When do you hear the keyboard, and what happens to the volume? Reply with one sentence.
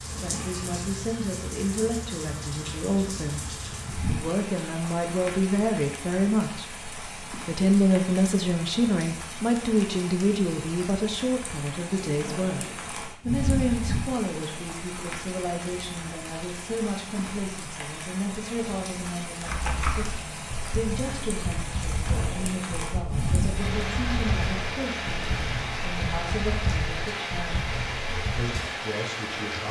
The keyboard can be heard from 19.4 to 28.6 s, at a steady volume.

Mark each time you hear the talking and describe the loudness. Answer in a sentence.
You can hear the talking from 0.1 to 6.7 s, getting louder; and from 7.5 to 29.6 s, getting quieter.